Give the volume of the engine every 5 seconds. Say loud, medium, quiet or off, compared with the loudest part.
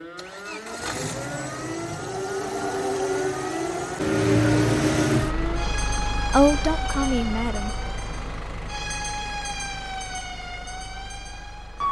loud, medium, quiet.